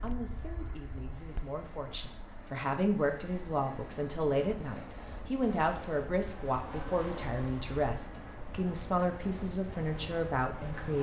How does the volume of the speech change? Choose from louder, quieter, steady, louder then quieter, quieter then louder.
louder.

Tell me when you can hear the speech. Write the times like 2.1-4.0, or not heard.
0.0-10.9.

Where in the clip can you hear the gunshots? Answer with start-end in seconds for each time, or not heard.
not heard.